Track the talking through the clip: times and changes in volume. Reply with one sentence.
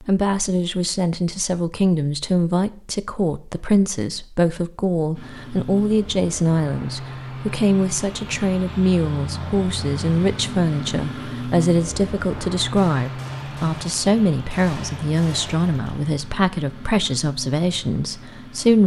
The talking can be heard from 0.0 to 18.8 s, at a steady volume.